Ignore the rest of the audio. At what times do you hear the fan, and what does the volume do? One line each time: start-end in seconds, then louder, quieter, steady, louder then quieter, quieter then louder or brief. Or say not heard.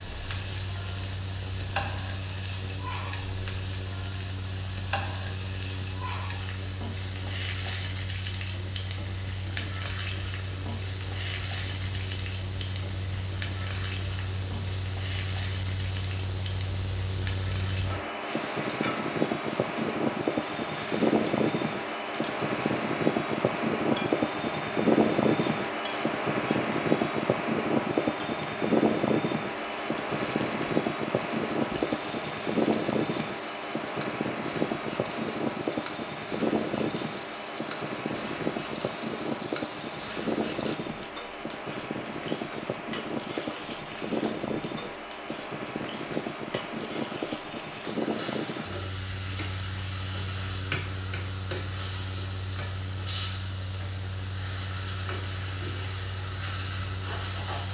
0.0-57.6 louder then quieter.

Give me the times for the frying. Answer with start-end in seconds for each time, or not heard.
0.0-57.6.